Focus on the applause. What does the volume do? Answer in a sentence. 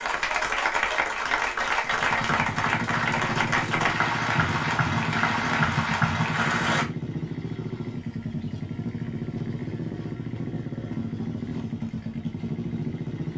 The volume of the applause stays about the same.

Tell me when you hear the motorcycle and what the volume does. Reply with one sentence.
The motorcycle can be heard from 1.8 to 13.3 s, at a steady volume.